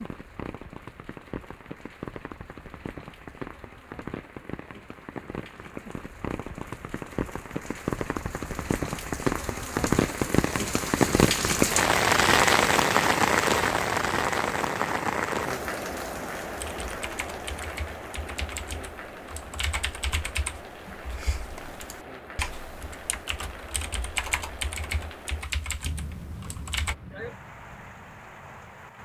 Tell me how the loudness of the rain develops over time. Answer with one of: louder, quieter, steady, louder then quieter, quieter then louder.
louder then quieter.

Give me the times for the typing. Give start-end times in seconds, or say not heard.
16.4-26.9.